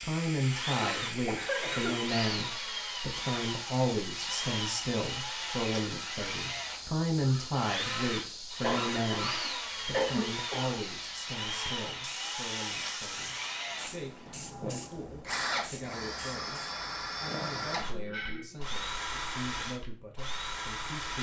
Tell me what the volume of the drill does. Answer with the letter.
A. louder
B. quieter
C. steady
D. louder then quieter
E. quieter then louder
C.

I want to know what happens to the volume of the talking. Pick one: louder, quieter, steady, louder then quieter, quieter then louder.
quieter.